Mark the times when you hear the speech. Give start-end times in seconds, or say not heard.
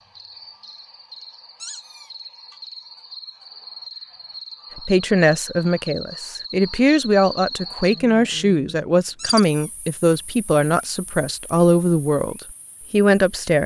4.8-13.6.